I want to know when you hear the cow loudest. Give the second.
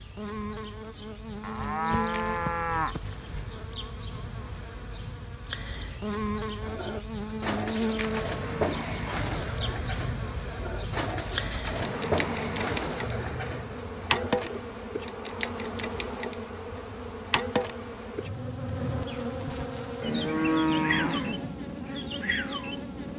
21 s.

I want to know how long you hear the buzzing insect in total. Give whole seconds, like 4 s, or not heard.
23 s.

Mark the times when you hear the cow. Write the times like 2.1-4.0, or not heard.
1.4-3.5, 20.0-21.6.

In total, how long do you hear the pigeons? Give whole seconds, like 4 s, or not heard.
8 s.